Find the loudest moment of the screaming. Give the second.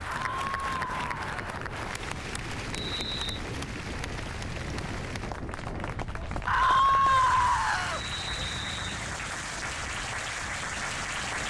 7 s.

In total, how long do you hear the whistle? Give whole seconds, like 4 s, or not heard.
2 s.